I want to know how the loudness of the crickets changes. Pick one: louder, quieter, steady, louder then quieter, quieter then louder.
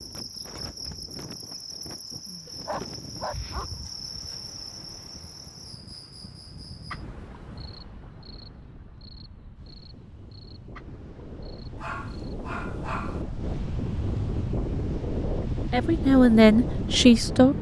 quieter.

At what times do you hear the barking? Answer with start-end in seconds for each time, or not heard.
2.5-3.7, 11.8-13.2.